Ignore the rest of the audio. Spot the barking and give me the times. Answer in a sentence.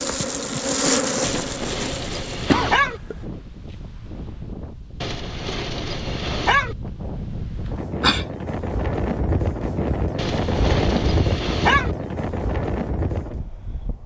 The barking can be heard from 1.2 to 3.0 s, from 5.0 to 6.8 s and from 10.2 to 11.9 s.